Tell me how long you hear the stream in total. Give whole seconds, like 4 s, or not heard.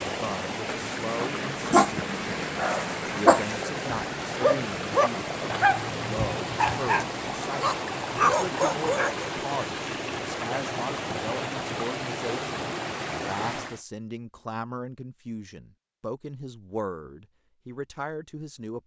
14 s.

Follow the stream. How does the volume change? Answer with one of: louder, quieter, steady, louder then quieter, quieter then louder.
steady.